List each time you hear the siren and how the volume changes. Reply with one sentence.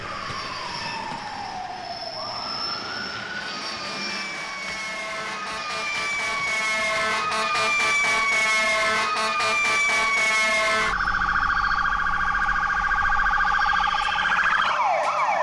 You can hear the siren from 0.0 to 15.3 s, getting louder.